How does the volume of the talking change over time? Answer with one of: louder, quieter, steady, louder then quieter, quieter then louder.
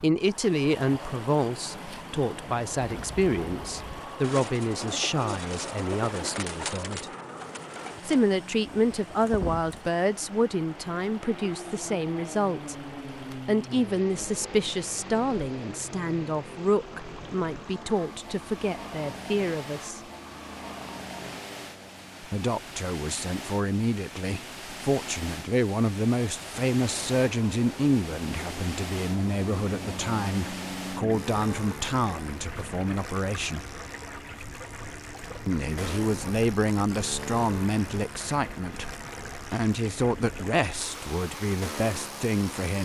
steady.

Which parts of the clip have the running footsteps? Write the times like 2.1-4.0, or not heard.
not heard.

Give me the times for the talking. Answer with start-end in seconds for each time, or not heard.
0.0-7.1, 8.1-12.8, 13.4-20.0, 22.2-33.7, 35.5-38.9, 39.5-42.8.